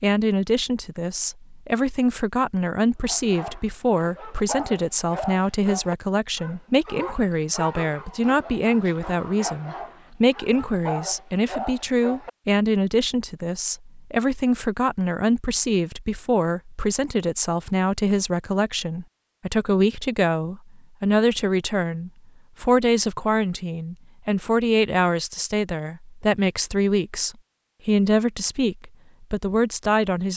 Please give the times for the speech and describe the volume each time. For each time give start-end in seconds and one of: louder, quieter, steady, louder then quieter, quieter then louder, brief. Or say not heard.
0.0-30.3 steady.